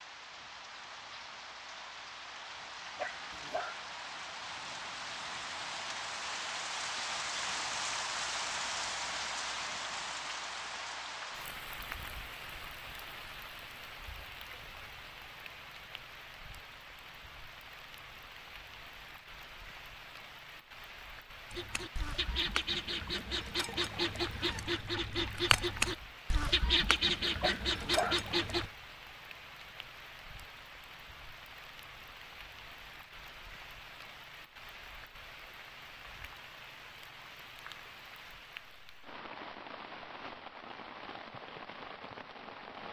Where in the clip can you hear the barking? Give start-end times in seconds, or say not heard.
3.0-3.8, 27.4-28.2.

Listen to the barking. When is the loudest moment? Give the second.
28 s.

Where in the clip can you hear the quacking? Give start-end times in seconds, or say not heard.
21.5-28.7.